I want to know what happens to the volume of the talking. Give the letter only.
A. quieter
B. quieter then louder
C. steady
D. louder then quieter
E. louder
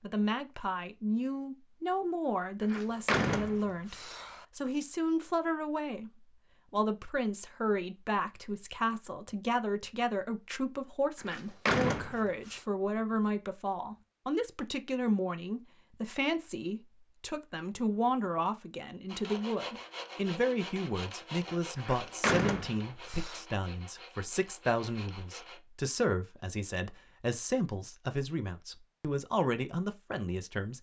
C.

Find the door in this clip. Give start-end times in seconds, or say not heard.
2.6-4.5, 11.2-12.6, 21.8-23.4.